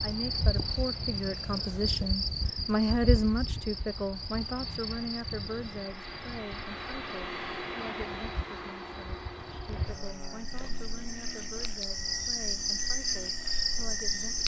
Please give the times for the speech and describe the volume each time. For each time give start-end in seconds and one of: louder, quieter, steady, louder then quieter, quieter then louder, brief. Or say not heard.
0.0-14.4 quieter.